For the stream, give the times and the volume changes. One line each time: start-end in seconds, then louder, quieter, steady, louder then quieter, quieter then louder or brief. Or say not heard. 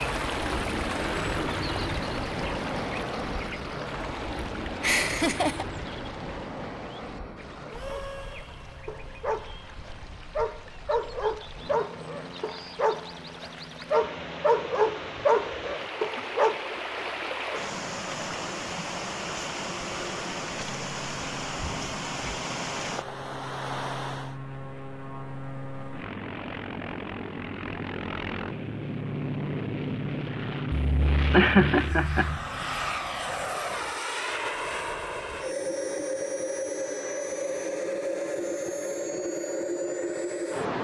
0.0-24.4 quieter then louder.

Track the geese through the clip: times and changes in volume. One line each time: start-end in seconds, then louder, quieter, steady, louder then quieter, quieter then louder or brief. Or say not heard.
not heard.